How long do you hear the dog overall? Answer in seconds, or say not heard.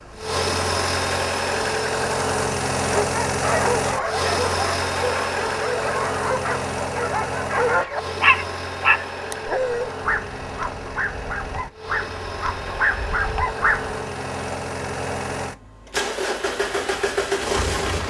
11 s.